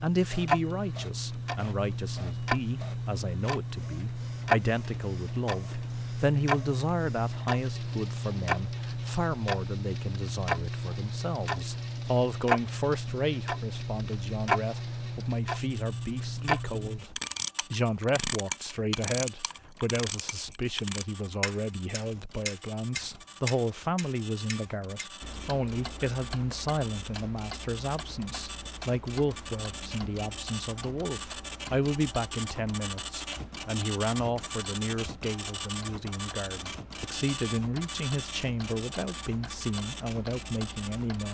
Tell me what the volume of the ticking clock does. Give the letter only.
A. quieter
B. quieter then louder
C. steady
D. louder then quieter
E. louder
A.